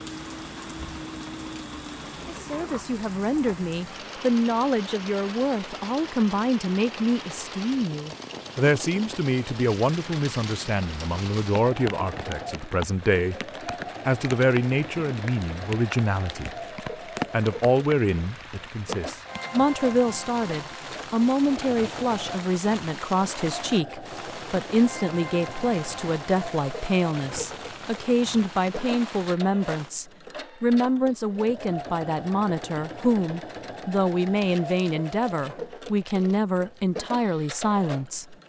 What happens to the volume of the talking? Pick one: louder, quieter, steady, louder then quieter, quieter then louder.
steady.